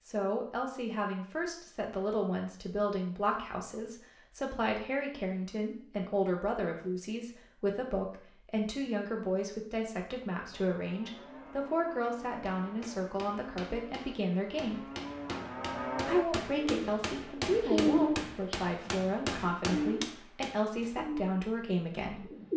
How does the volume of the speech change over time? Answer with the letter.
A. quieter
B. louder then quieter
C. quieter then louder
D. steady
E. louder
D.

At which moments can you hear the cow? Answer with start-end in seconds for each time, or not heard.
10.5-16.2.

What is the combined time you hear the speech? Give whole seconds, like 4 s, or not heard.
21 s.